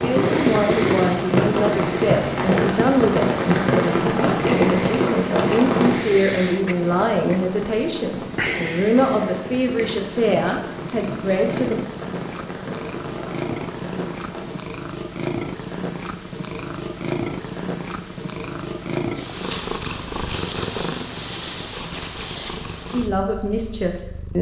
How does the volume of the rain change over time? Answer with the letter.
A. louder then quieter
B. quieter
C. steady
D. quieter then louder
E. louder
B.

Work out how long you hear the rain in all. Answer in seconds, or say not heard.
15 s.